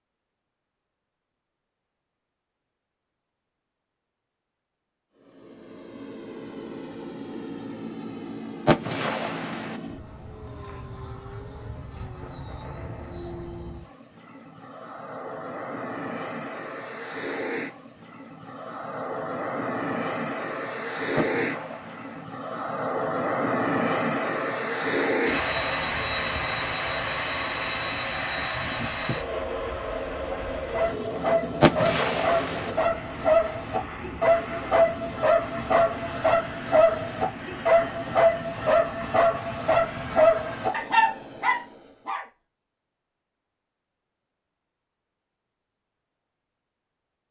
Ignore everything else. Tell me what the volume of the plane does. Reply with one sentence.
The volume of the plane goes up, then down.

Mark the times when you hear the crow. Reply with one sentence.
The crow can't be heard in this clip.